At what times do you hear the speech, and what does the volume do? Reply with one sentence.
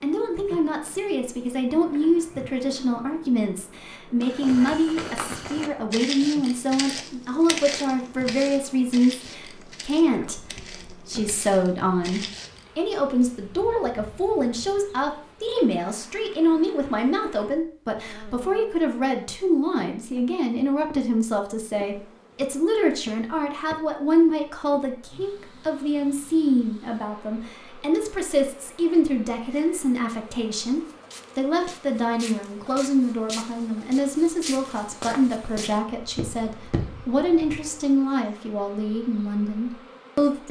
The speech can be heard from 0.0 to 40.4 s, at a steady volume.